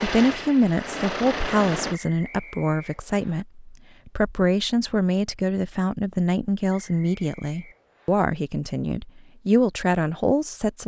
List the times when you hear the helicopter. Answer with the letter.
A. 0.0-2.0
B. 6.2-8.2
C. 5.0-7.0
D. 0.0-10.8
A.